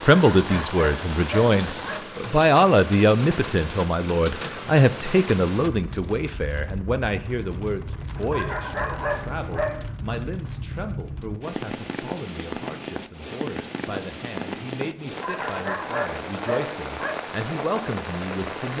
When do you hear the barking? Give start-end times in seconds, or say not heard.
0.1-2.0, 8.3-9.8, 15.2-17.1.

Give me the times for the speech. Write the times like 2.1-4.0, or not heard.
0.0-18.7.